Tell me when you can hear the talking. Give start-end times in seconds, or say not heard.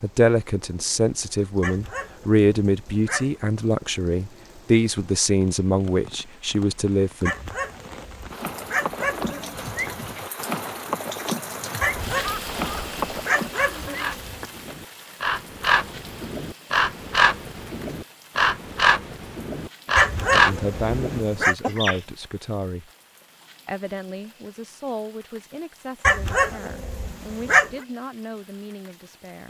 0.0-7.3, 20.3-22.9, 23.6-29.4.